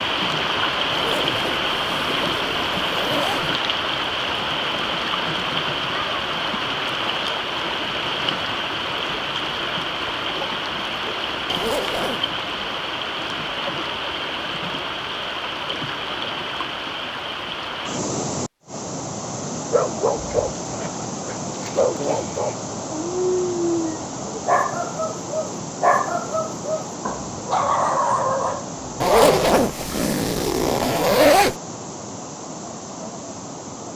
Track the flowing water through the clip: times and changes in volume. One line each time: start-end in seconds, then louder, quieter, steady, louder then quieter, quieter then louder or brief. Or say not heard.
0.0-33.9 quieter.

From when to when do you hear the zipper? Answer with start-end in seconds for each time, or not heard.
0.9-3.5, 11.4-12.2, 29.0-31.6.